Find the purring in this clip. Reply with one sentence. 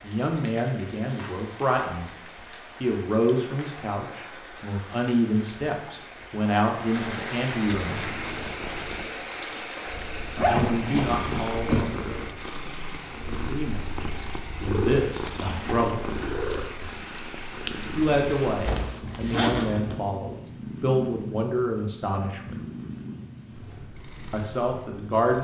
The purring can be heard from 7.8 to 25.3 s.